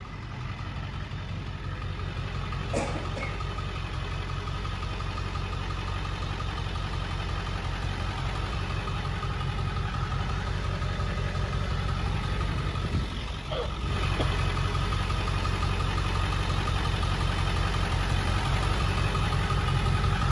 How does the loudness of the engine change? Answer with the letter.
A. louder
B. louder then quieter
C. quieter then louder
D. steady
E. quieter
A.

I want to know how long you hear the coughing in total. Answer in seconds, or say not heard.
2 s.